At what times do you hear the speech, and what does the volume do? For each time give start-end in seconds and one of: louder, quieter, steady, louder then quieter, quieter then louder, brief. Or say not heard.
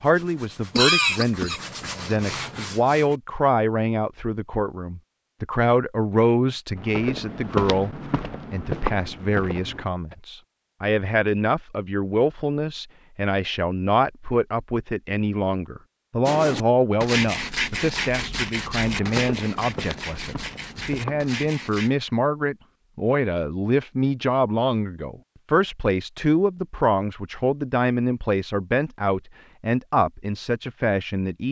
0.0-31.4 steady.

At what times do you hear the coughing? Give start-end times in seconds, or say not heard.
0.8-2.1.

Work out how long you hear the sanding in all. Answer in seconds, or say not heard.
9 s.